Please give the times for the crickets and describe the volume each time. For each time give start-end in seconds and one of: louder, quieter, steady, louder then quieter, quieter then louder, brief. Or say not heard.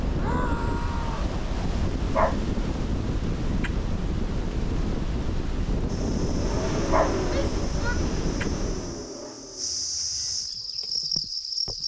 5.8-11.8 louder.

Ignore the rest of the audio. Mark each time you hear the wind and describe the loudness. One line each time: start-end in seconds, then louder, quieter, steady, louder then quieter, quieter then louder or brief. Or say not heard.
0.0-9.1 steady.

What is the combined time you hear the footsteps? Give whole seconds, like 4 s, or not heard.
not heard.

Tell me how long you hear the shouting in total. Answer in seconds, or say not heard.
2 s.